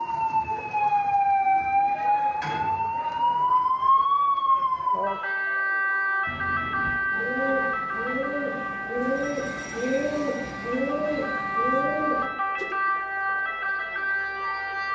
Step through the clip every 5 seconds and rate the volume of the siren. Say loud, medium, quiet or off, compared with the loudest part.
loud, medium, medium.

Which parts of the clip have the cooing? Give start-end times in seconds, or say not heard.
6.2-12.8.